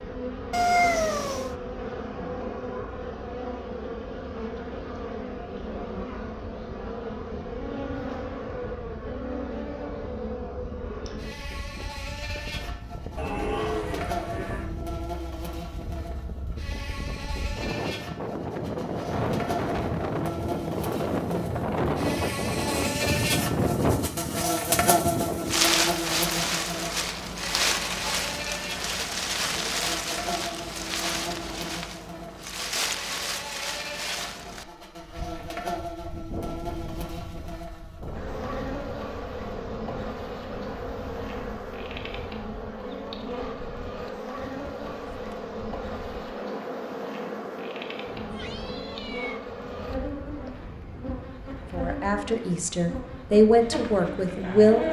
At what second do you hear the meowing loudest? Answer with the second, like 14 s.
1 s.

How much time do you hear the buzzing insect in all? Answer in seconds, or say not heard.
55 s.